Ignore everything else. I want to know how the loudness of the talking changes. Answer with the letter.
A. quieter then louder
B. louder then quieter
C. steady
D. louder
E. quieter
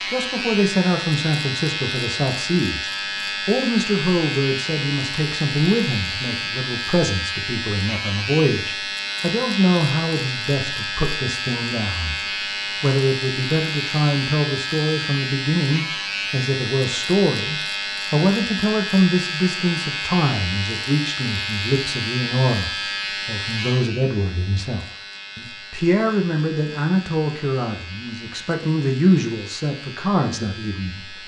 C.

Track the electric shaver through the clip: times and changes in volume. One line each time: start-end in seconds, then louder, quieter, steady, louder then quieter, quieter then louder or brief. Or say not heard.
0.0-31.2 quieter.